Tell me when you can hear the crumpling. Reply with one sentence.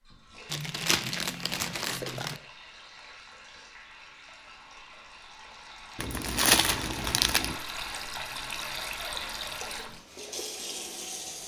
You can hear the crumpling from 0.5 to 2.4 s and from 6.0 to 7.5 s.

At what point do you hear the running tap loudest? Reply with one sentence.
The loudest moment of the running tap is at 9 seconds.